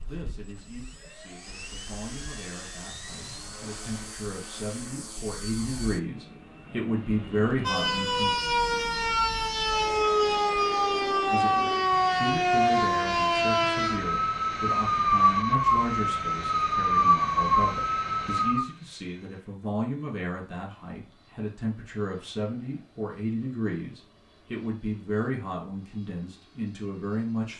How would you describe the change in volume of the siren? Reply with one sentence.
The loudness of the siren stays about the same.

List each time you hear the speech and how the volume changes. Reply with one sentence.
You can hear the speech from 0.0 to 8.3 s, getting louder; and from 11.3 to 27.5 s, at a steady volume.